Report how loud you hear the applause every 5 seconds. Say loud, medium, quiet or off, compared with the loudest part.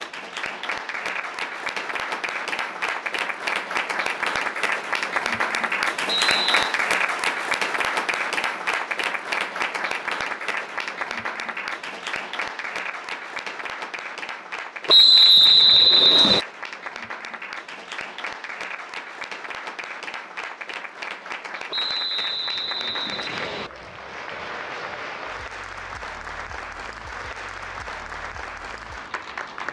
loud, loud, medium, medium, medium, medium.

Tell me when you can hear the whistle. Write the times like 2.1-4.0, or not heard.
6.0-6.8, 14.8-16.4, 21.7-23.7.